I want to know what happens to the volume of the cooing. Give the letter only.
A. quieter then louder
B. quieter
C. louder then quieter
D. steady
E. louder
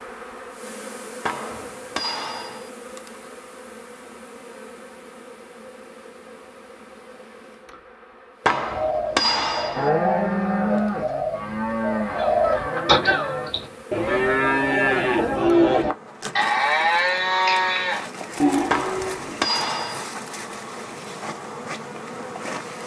E.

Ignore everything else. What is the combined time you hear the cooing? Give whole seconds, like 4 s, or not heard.
5 s.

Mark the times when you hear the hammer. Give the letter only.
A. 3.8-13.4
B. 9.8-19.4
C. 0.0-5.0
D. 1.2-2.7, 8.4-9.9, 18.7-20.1
D.